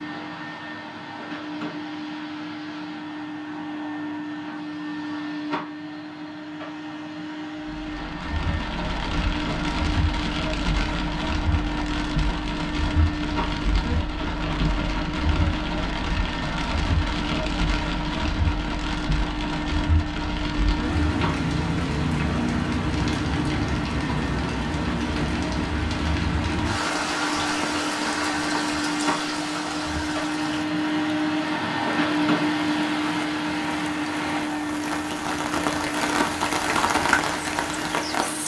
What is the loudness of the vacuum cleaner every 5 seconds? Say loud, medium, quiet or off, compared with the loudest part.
medium, medium, medium, medium, medium, medium, loud, medium.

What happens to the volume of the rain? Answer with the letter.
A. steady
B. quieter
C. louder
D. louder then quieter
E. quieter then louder
A.